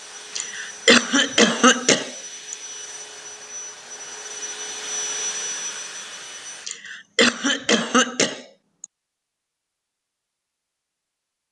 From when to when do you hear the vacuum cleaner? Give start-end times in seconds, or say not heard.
0.0-6.7.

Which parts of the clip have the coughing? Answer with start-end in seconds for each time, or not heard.
0.3-2.5, 6.7-8.8.